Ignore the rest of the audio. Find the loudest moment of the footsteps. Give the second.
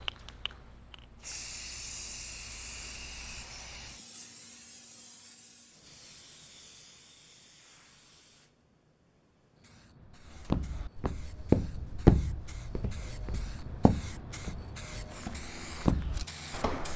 12 s.